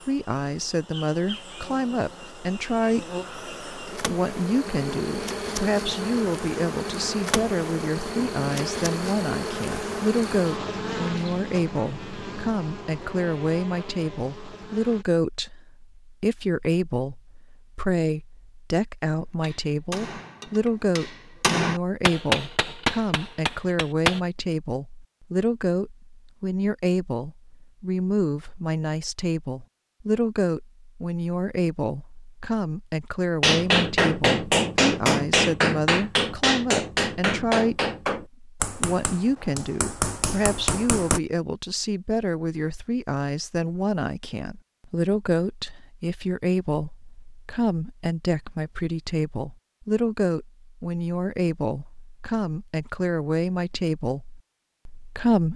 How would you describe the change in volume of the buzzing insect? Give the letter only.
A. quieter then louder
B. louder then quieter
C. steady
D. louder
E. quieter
B.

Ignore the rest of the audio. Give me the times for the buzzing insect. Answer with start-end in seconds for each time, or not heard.
0.0-15.1.